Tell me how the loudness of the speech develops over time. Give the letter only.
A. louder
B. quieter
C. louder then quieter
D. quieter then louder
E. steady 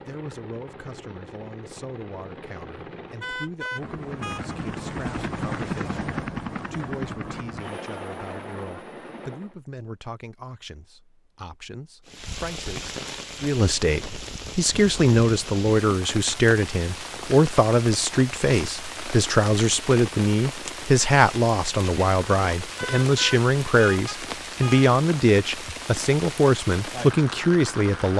A.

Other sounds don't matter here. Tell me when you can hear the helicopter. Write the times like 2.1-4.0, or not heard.
0.0-9.6.